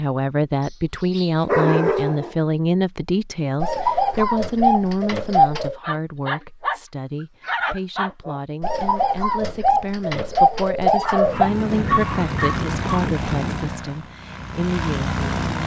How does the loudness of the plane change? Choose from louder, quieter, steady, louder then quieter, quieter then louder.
quieter then louder.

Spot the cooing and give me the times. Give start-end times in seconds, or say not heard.
3.6-5.8, 8.6-11.5.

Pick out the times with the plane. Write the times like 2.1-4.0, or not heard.
11.2-15.6.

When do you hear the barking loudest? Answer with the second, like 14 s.
2 s.